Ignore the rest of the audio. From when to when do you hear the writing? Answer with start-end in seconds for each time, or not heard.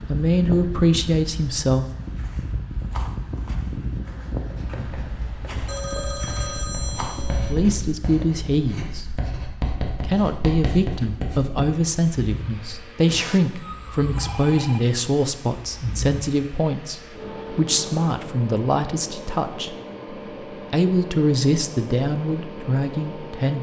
4.5-11.7.